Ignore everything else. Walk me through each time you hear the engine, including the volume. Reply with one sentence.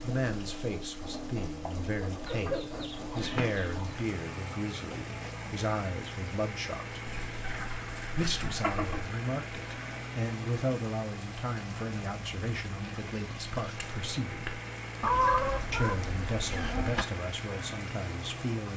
You can hear the engine from 0.0 to 18.7 s, at a steady volume.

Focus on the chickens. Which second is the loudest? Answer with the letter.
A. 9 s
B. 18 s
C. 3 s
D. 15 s
D.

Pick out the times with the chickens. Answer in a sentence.
You can hear the chickens from 2.2 to 4.0 s, from 7.0 to 9.1 s and from 15.0 to 17.1 s.